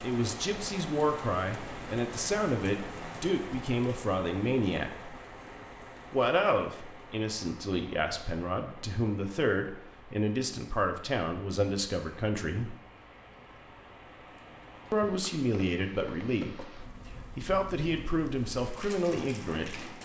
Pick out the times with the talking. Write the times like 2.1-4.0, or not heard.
0.0-5.2, 6.1-12.8, 14.9-19.9.